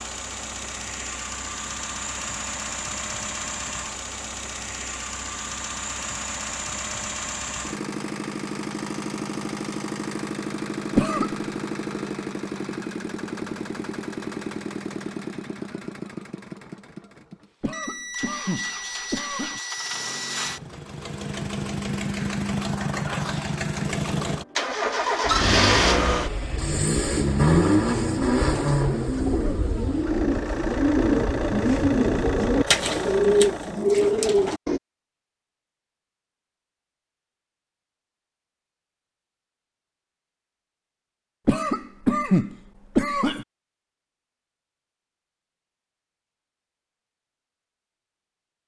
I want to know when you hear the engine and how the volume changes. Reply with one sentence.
You can hear the engine from 0.0 to 33.9 s, getting louder.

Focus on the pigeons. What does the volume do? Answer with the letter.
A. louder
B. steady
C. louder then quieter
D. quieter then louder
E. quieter
A.